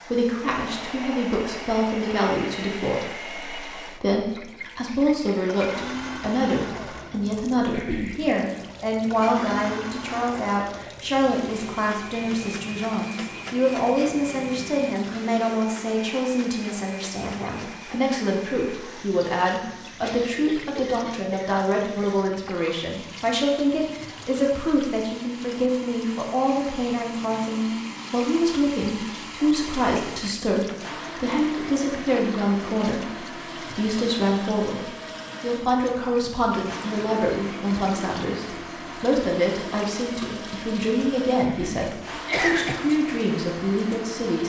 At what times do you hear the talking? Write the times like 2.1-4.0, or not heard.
0.0-44.4.